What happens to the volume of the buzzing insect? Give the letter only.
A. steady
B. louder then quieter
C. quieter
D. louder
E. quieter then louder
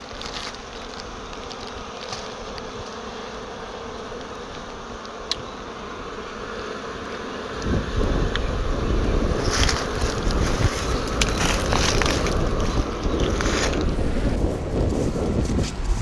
B.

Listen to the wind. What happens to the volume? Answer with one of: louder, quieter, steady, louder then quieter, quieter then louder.
louder.